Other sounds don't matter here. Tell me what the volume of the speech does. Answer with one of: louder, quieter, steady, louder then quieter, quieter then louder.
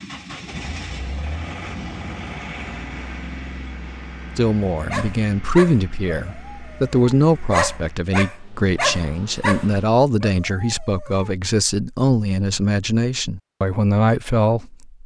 steady.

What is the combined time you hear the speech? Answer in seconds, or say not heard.
11 s.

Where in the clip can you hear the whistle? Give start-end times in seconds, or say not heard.
not heard.